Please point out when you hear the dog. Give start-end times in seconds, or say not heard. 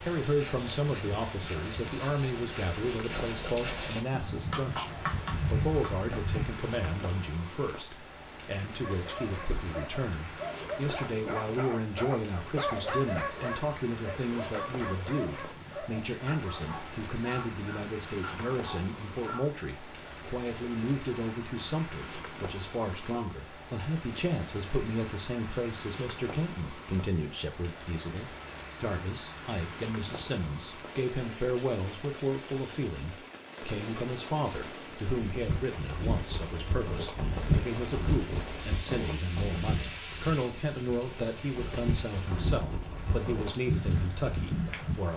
8.8-19.6.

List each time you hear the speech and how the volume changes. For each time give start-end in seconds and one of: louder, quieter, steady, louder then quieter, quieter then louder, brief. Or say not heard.
0.0-45.1 steady.